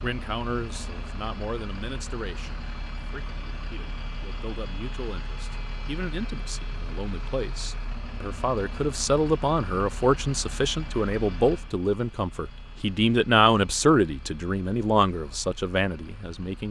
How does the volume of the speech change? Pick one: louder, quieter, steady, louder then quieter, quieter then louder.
louder.